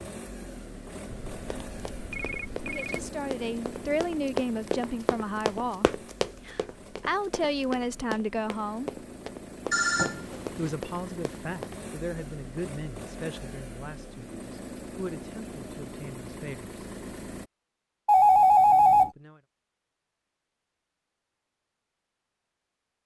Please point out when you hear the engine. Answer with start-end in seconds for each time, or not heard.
0.0-17.5.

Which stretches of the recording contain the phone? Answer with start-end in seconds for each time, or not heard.
1.1-3.1, 9.7-10.7, 18.1-19.1.